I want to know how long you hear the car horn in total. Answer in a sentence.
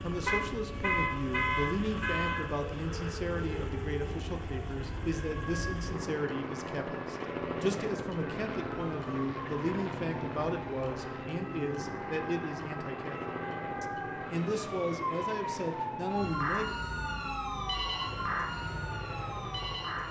The car horn can be heard for 2 seconds in total.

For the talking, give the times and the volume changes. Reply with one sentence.
You can hear the talking from 0.0 to 16.8 s, at a steady volume.